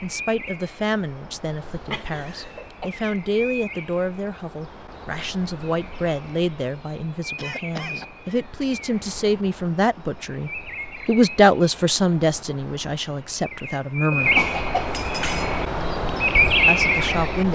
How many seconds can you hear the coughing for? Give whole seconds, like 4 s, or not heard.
3 s.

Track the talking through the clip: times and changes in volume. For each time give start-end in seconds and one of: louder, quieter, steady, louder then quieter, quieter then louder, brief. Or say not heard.
0.0-14.3 louder
16.6-17.5 brief.